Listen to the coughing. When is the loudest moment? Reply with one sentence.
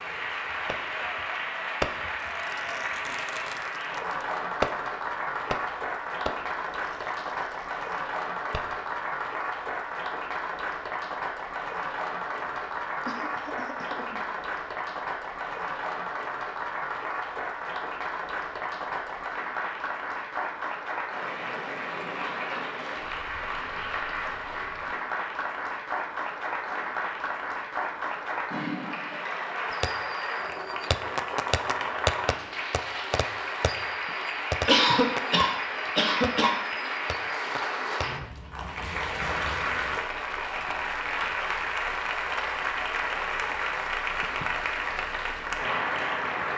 The loudest moment of the coughing is at 35 seconds.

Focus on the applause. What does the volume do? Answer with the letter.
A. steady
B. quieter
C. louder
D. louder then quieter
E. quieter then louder
A.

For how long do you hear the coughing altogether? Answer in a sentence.
You can hear the coughing for 4 seconds altogether.